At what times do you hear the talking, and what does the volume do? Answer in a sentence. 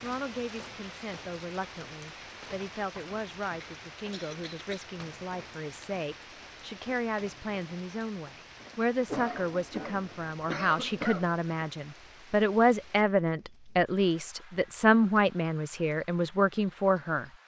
The talking can be heard from 0.0 to 17.3 s, getting louder.